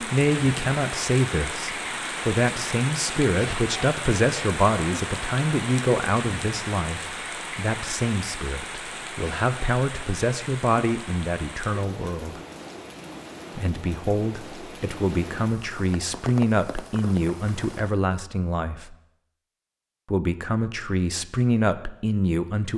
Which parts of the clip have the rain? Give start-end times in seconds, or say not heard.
0.0-18.0.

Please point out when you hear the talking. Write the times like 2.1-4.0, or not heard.
0.0-12.4, 13.6-18.9, 20.1-22.7.